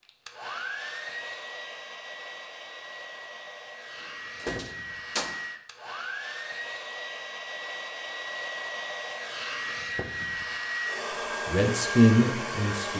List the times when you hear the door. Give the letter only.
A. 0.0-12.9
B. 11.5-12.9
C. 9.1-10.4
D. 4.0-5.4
D.